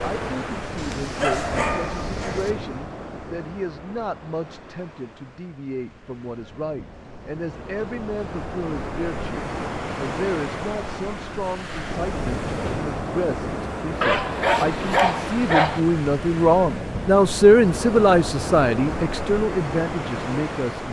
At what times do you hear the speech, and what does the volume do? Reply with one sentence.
You can hear the speech from 0.0 to 20.8 s, getting louder.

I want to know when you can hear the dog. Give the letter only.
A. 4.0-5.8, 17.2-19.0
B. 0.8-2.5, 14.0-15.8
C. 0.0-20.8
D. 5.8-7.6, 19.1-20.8
B.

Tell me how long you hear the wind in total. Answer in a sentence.
You can hear the wind for 21 seconds altogether.